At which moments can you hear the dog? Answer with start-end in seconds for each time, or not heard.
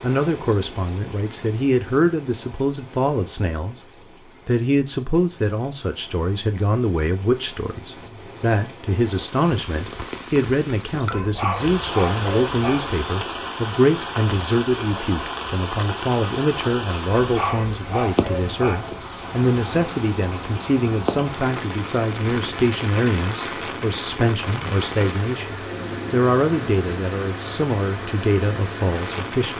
11.1-12.9, 17.1-18.9.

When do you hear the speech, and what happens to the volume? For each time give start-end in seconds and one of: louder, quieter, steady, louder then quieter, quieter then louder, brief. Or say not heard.
0.0-29.5 steady.